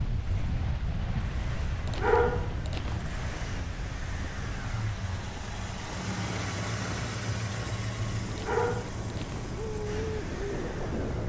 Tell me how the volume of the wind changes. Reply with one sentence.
The volume of the wind goes down, then up.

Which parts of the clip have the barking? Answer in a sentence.
The barking can be heard from 1.9 to 3.0 s and from 8.3 to 9.4 s.